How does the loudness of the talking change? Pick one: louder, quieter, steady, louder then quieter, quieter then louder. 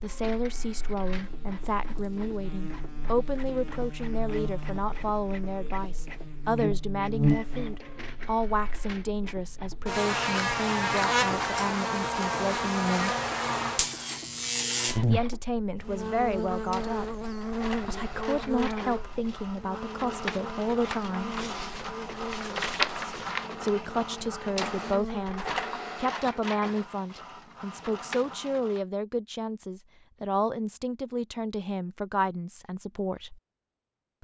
steady.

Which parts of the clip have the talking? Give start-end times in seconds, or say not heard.
0.0-13.2, 15.1-21.4, 23.6-33.4.